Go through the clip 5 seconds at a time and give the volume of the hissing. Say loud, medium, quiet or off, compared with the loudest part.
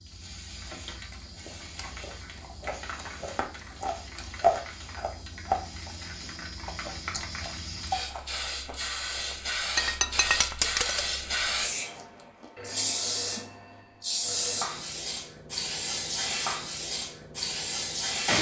quiet, medium, loud, loud.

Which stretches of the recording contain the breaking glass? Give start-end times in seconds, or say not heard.
9.8-11.2.